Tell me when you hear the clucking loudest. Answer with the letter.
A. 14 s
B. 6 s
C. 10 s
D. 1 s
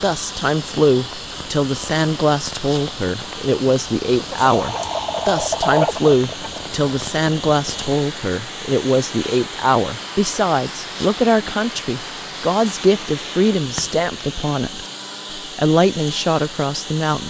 B.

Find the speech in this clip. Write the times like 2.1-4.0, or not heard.
0.0-17.2.